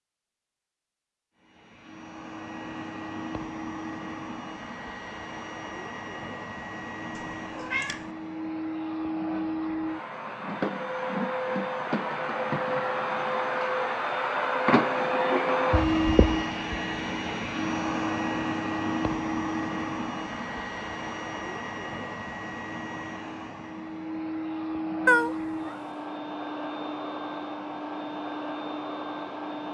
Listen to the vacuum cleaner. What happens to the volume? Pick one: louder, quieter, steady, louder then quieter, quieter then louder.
louder then quieter.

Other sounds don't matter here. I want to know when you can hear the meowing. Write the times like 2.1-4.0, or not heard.
7.2-8.1, 25.1-25.8.